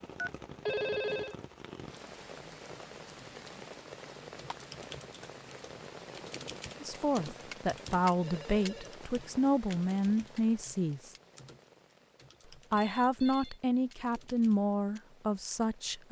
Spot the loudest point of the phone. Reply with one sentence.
The loudest moment of the phone is at 1 second.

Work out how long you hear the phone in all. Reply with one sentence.
You can hear the phone for 3 seconds altogether.